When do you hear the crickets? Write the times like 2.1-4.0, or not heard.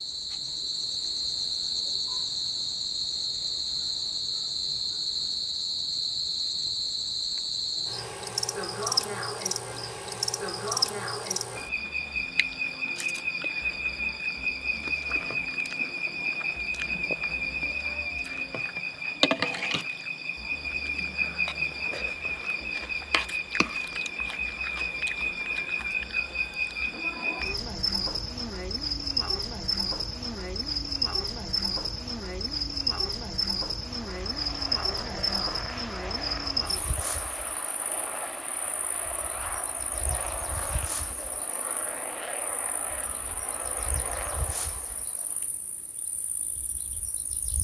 0.0-47.6.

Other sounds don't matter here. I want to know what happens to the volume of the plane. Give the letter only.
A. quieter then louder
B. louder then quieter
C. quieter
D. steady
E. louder
D.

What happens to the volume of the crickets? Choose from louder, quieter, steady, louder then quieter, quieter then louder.
quieter.